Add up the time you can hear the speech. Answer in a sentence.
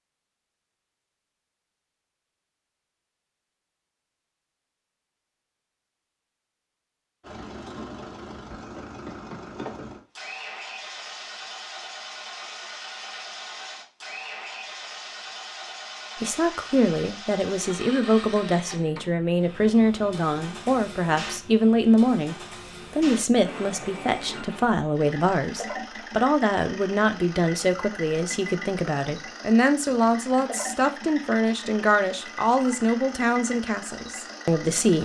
The speech can be heard for 19 seconds in total.